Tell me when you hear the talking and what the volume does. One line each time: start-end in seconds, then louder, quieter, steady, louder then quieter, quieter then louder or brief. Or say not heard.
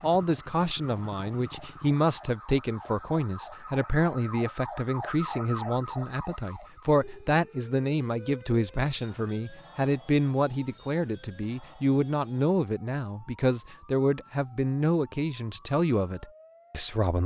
0.0-17.2 steady.